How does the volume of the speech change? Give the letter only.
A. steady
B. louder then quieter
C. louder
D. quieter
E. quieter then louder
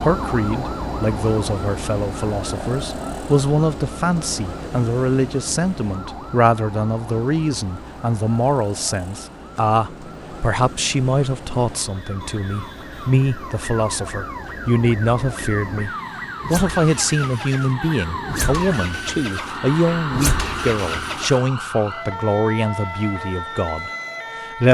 A.